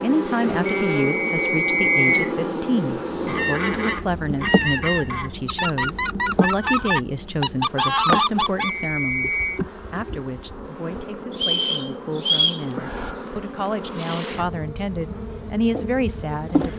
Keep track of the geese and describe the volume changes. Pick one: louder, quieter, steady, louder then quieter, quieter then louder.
louder.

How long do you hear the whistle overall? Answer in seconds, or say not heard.
4 s.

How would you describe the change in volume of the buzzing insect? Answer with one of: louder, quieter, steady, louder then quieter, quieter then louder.
quieter.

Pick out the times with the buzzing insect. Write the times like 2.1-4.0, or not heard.
0.0-16.7.